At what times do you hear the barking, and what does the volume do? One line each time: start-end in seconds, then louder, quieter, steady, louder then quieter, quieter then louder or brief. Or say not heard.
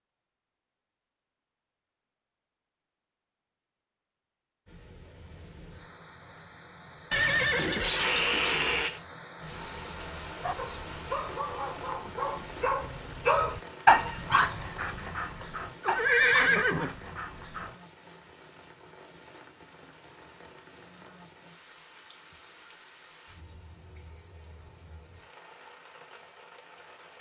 10.4-17.8 louder then quieter.